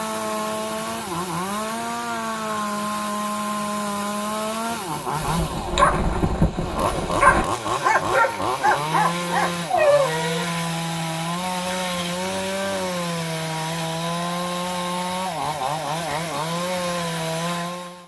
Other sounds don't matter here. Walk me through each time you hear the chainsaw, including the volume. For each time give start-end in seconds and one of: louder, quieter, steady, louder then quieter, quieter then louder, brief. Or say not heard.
0.0-18.0 steady.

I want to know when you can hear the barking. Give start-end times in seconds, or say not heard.
5.2-10.5.